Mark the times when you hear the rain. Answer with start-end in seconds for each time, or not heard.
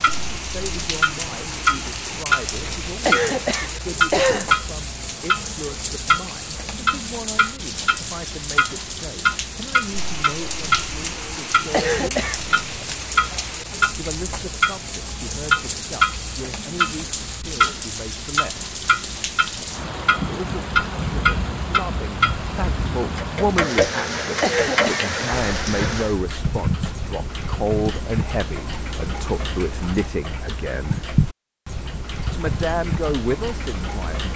0.0-26.2.